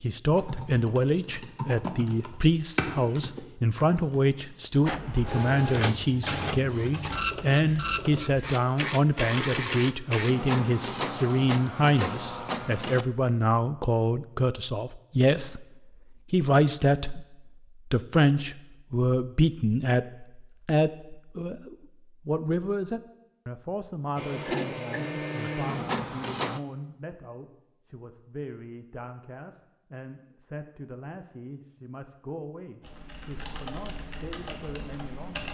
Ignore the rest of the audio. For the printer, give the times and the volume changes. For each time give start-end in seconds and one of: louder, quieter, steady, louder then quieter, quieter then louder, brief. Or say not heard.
4.8-13.1 steady
24.1-26.6 brief.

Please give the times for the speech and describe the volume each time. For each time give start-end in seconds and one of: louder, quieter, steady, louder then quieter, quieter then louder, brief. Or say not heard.
0.0-35.4 quieter.